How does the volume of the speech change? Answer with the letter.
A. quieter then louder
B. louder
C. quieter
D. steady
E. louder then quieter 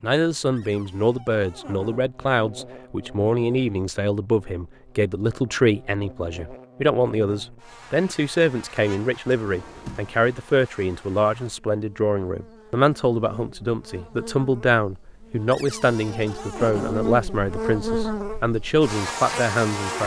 D.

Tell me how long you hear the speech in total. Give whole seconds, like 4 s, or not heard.
20 s.